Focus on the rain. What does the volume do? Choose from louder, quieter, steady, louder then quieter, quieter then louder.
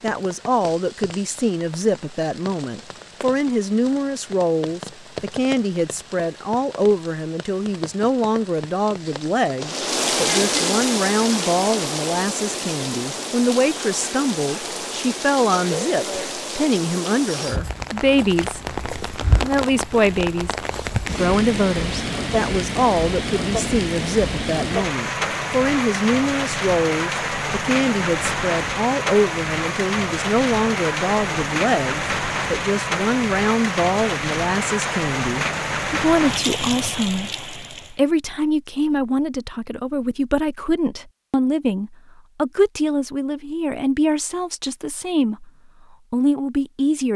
louder.